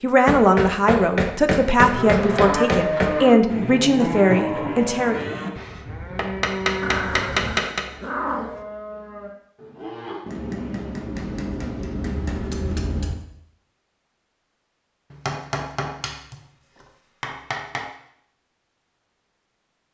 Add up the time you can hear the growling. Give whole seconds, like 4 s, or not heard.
2 s.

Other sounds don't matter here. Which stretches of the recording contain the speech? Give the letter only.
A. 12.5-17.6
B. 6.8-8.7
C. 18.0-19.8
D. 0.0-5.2
D.